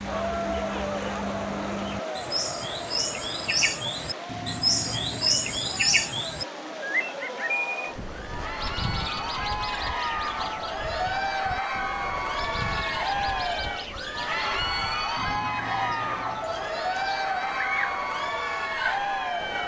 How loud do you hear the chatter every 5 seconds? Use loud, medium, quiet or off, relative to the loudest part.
medium, medium, loud, loud.